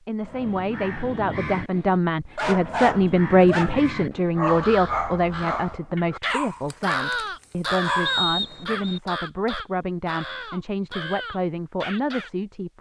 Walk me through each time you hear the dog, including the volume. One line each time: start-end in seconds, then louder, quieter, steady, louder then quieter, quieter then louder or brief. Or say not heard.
2.4-8.2 quieter.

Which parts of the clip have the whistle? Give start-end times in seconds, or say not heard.
8.1-9.0.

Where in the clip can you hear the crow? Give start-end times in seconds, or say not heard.
0.2-12.3.